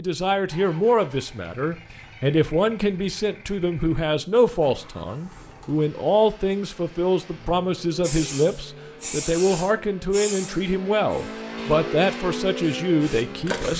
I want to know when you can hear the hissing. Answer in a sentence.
The hissing can be heard from 8.0 to 13.7 s.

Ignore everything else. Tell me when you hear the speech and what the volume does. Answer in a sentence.
The speech can be heard from 0.0 to 13.7 s, at a steady volume.